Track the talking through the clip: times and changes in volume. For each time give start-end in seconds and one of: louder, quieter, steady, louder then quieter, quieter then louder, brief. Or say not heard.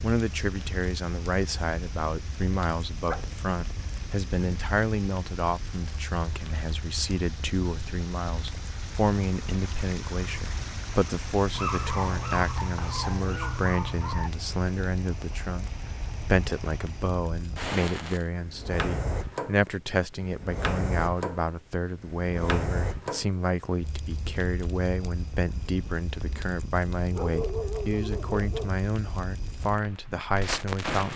0.0-31.1 steady.